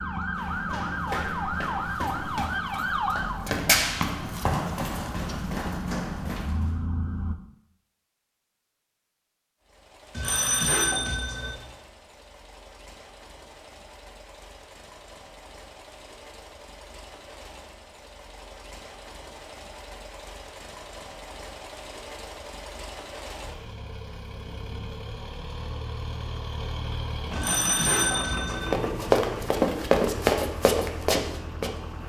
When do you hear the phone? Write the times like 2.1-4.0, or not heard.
10.2-11.6, 27.3-28.7.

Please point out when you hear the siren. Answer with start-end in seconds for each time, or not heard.
0.0-7.3.